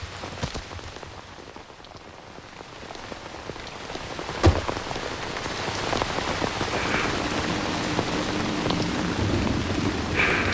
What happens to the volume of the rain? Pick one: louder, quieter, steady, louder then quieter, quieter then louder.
louder.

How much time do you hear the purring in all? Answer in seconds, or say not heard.
4 s.